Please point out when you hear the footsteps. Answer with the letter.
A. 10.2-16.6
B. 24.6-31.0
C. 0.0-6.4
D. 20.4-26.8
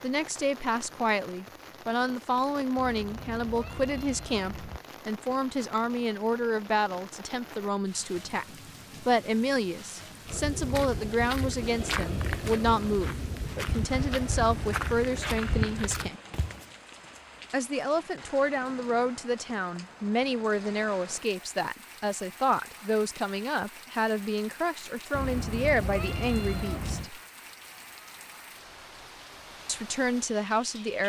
A.